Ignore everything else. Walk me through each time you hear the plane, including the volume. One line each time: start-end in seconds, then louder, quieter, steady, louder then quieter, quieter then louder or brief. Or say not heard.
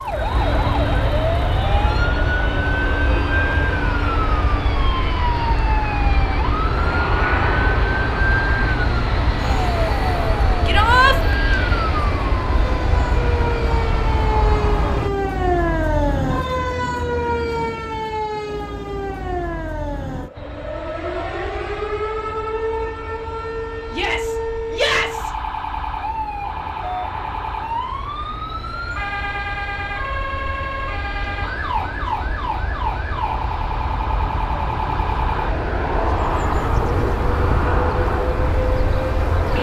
0.0-15.1 steady
20.4-39.5 louder.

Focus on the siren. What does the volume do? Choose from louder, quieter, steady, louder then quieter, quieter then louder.
steady.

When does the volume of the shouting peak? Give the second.
11 s.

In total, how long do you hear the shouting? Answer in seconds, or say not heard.
2 s.